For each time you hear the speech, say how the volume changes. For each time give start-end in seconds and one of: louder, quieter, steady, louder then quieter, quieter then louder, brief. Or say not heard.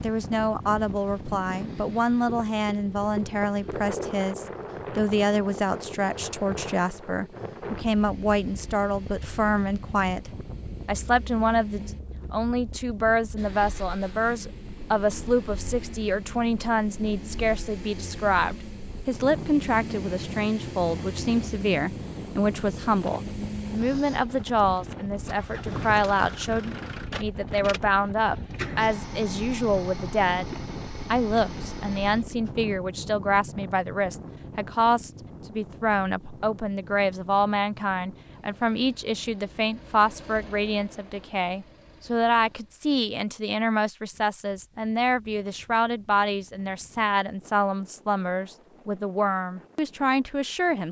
0.0-50.8 steady.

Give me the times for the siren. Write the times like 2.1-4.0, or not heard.
not heard.